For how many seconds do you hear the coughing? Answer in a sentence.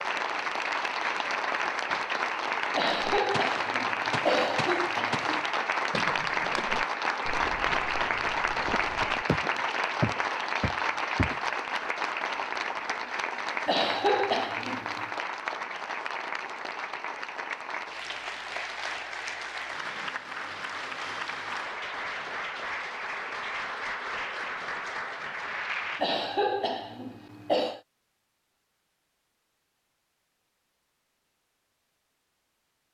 You can hear the coughing for 6 seconds altogether.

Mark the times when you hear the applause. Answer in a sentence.
The applause can be heard from 0.0 to 26.1 s.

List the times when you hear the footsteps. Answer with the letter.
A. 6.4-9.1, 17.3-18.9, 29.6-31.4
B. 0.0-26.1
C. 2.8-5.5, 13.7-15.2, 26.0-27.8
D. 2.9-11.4
D.